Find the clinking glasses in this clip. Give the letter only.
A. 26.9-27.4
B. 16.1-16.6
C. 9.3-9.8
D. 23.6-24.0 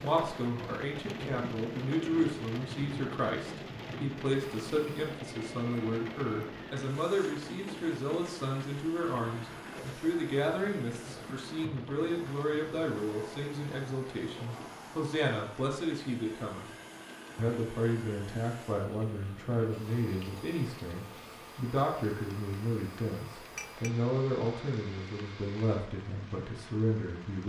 D.